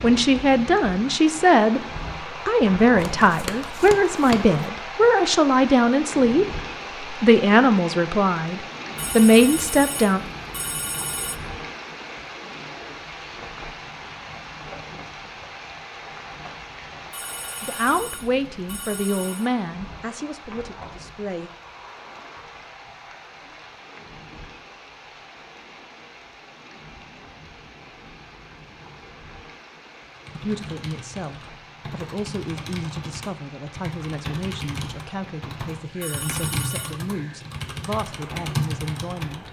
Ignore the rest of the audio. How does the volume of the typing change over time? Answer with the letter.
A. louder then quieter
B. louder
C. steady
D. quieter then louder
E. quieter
B.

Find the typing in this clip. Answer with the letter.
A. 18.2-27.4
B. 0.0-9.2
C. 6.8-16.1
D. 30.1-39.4
D.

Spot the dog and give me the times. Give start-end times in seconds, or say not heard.
not heard.